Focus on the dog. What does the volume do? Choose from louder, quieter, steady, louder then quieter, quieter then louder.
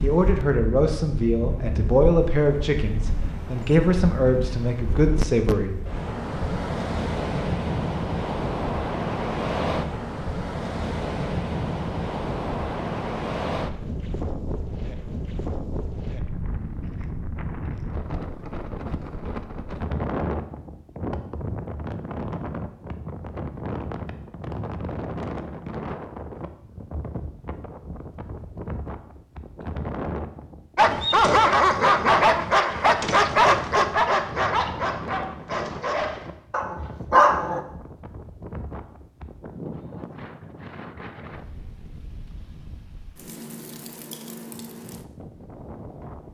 quieter then louder.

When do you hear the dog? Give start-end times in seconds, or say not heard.
30.8-37.6.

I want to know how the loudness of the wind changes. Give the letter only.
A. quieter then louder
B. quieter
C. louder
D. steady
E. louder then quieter
B.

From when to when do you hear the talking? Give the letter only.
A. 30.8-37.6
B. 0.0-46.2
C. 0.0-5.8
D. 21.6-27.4
C.